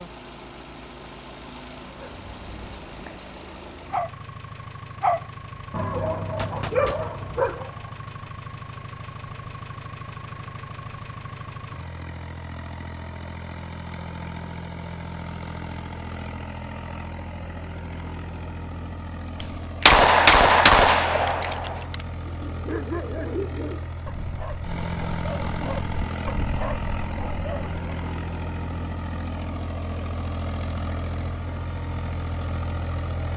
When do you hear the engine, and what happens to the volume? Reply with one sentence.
You can hear the engine from 0.0 to 33.3 s, getting louder.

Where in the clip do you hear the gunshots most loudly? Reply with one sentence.
The volume of the gunshots peaks at 20 seconds.